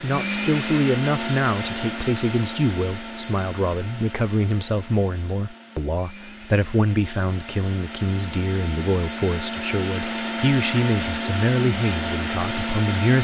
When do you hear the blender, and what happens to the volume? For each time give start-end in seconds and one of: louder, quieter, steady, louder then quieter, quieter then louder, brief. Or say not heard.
0.0-13.1 quieter then louder.